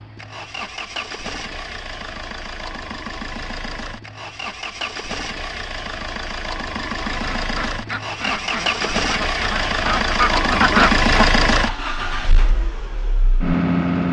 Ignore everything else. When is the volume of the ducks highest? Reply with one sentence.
The volume of the ducks peaks at 11 seconds.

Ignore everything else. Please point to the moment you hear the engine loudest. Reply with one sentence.
The volume of the engine peaks at 11 seconds.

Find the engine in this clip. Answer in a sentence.
You can hear the engine from 0.0 to 14.0 s.